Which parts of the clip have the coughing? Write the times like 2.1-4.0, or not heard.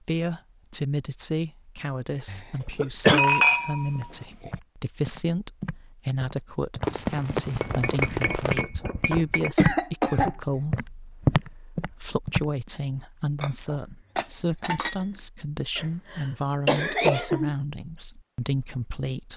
2.2-3.2, 9.6-10.3, 15.8-17.5.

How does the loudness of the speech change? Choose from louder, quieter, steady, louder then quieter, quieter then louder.
steady.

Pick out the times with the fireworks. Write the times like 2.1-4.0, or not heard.
6.8-8.7.